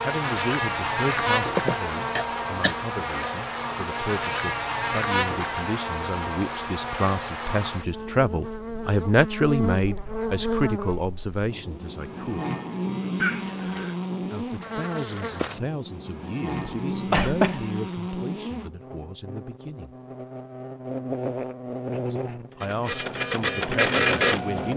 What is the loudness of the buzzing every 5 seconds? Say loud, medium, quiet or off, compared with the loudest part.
loud, loud, loud, medium, medium.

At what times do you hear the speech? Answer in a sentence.
You can hear the speech from 0.0 to 12.4 s, from 14.3 to 19.9 s and from 22.1 to 24.7 s.